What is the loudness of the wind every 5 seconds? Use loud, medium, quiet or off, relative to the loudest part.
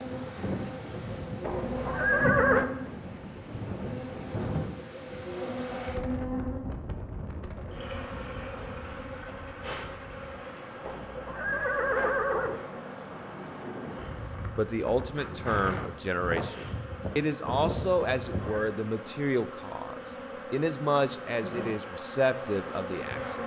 loud, medium, medium, loud, off.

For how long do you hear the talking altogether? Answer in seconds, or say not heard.
9 s.